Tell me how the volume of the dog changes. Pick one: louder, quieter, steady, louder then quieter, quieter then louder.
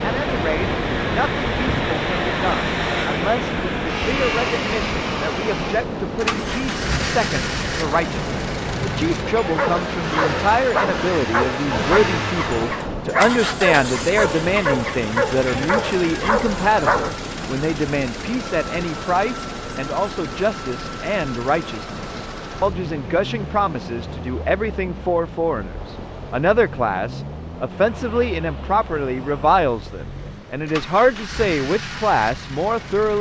steady.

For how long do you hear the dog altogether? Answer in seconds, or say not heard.
8 s.